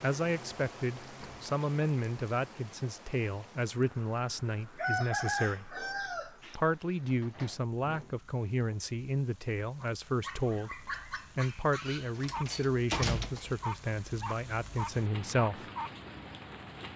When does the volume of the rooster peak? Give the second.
5 s.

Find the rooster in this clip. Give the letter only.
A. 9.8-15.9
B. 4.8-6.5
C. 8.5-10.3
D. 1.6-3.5
B.